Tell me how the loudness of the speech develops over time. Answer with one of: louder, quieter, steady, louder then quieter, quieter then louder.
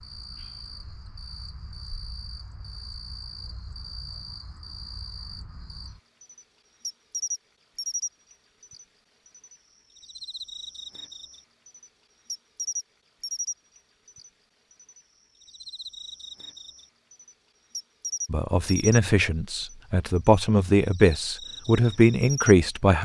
quieter then louder.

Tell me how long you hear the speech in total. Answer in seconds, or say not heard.
5 s.